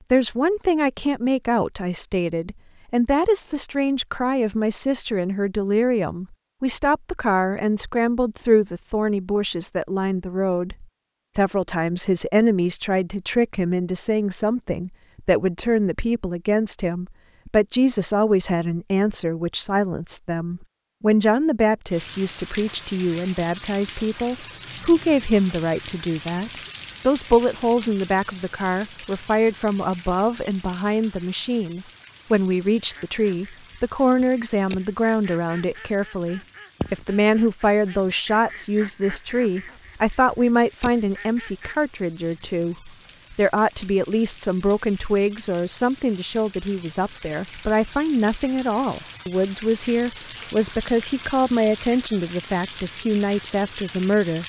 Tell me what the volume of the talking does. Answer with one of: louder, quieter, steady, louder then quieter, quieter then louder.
steady.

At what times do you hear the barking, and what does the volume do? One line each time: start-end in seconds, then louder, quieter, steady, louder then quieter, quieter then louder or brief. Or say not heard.
not heard.